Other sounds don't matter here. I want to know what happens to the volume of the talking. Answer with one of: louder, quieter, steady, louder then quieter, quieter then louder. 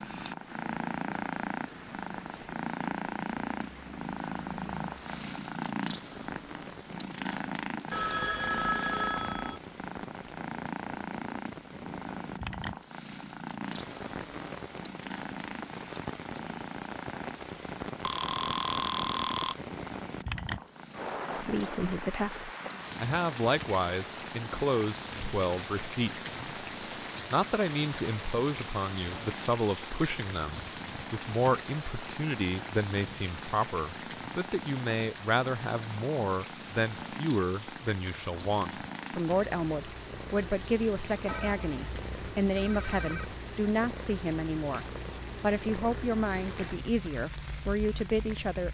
steady.